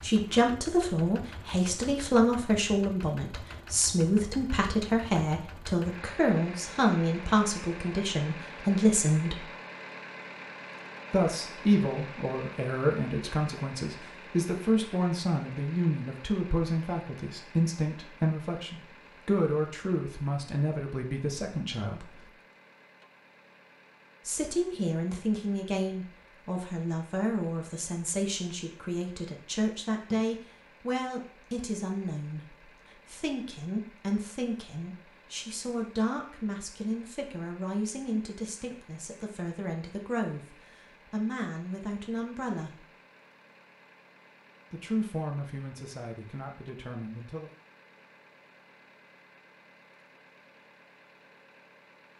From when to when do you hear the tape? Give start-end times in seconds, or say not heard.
not heard.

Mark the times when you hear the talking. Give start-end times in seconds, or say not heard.
0.0-9.4, 11.1-22.3, 24.2-42.9, 44.7-47.5.